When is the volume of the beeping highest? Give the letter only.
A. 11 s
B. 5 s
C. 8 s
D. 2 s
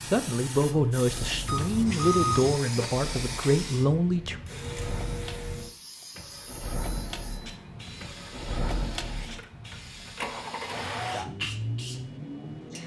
D.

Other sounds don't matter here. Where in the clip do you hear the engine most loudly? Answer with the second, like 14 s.
11 s.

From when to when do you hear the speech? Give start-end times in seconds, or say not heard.
0.1-4.4.